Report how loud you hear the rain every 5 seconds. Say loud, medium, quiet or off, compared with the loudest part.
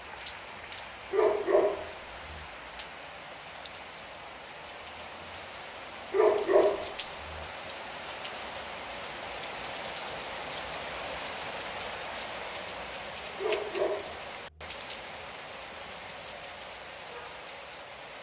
medium, loud, loud, medium.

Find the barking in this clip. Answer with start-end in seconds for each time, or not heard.
1.1-2.5, 6.1-7.5, 13.3-14.7.